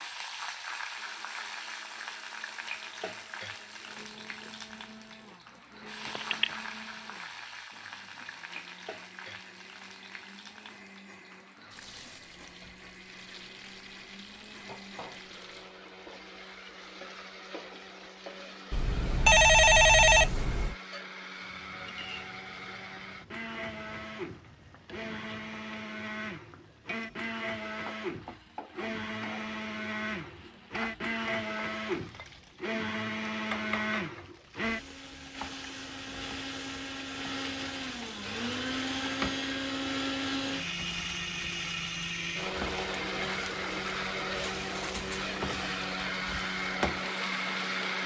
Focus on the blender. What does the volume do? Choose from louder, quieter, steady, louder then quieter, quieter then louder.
louder.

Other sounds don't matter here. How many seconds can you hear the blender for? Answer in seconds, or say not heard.
48 s.